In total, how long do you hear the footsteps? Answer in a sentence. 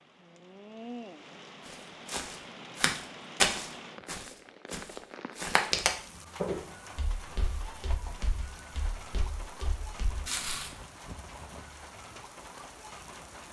The footsteps can be heard for 9 seconds in total.